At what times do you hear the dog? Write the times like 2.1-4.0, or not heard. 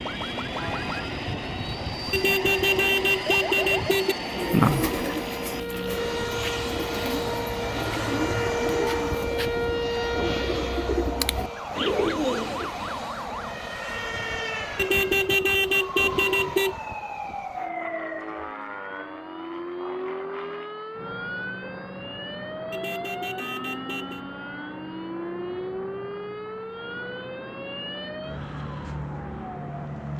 not heard.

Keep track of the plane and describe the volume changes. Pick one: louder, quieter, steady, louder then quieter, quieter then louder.
quieter.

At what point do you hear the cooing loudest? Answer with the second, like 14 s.
5 s.